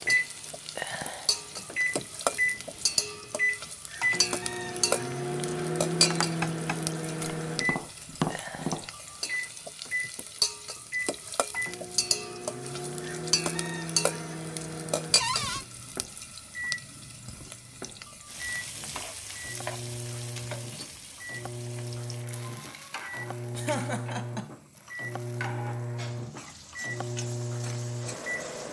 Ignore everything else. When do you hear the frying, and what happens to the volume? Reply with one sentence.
The frying can be heard from 0.0 to 28.6 s, getting quieter.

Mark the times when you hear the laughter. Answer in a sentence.
You can hear the laughter from 23.6 to 24.6 s.